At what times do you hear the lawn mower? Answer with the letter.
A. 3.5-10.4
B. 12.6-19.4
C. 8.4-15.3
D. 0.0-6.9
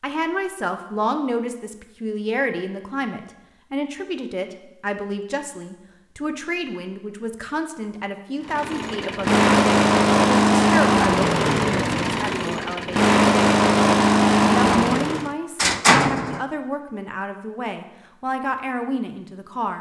C.